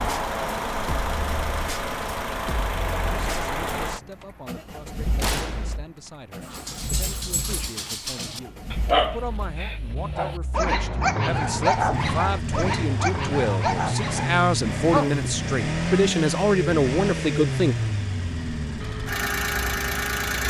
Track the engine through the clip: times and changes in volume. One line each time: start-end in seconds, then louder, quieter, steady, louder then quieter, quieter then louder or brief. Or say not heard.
0.0-20.4 quieter then louder.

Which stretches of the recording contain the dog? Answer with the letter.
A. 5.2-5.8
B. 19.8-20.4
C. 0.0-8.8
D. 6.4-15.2
D.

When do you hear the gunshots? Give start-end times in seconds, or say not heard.
5.2-5.8.